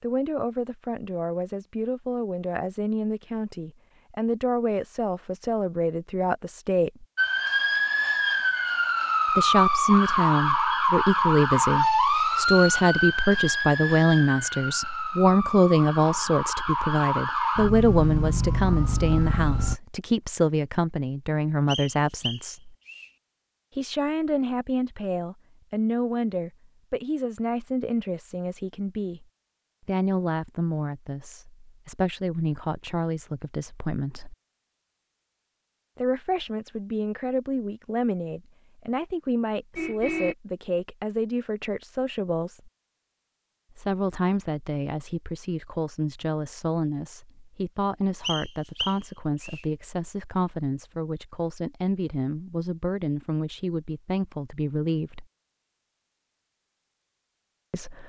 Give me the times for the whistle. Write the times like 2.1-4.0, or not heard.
21.6-23.1, 48.2-49.6.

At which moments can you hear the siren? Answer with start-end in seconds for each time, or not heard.
7.2-19.8.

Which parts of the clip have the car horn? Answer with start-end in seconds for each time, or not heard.
39.8-40.4.